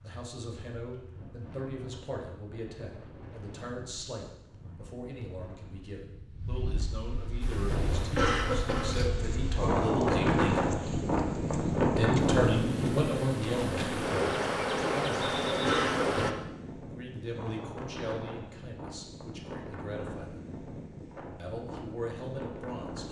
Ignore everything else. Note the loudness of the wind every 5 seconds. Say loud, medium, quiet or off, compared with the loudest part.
quiet, medium, loud, quiet, quiet.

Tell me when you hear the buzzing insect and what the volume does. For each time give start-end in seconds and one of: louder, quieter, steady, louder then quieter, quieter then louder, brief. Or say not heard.
7.4-16.3 louder.